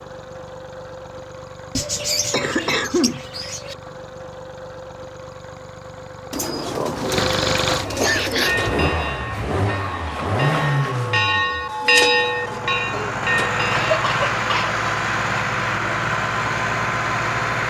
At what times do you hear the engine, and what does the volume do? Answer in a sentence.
You can hear the engine from 0.0 to 17.6 s, getting louder.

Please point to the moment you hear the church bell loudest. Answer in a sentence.
The volume of the church bell peaks at 12 seconds.